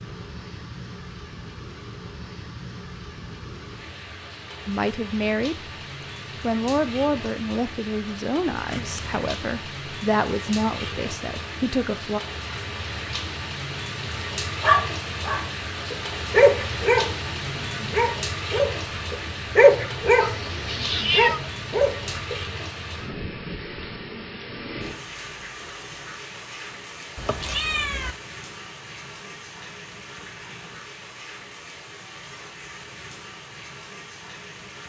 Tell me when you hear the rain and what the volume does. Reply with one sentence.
The rain can be heard from 0.0 to 34.8 s, getting louder then quieter.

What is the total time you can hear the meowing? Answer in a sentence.
You can hear the meowing for 3 seconds altogether.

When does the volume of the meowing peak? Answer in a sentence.
The volume of the meowing peaks at 21 seconds.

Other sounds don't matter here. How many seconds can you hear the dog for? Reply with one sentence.
You can hear the dog for 8 seconds altogether.